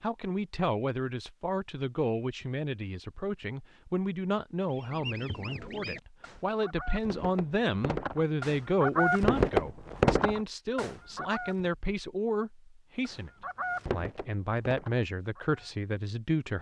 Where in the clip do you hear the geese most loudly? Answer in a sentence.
The volume of the geese peaks at 9 seconds.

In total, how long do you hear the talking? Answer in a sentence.
The talking can be heard for 16 seconds in total.